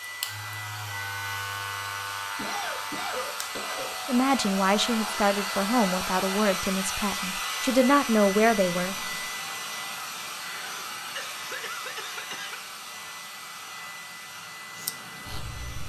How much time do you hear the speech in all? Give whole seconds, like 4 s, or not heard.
5 s.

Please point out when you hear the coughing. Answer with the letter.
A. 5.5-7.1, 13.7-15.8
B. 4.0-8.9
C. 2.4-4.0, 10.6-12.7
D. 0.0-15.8
C.